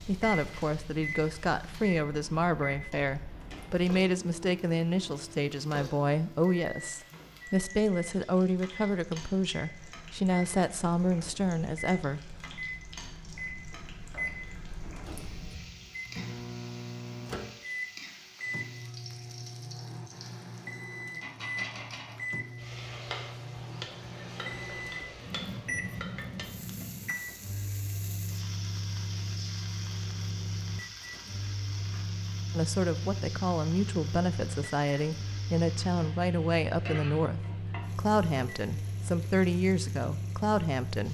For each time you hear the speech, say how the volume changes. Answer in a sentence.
The speech can be heard from 0.1 to 12.4 s, at a steady volume; and from 32.5 to 41.0 s, at a steady volume.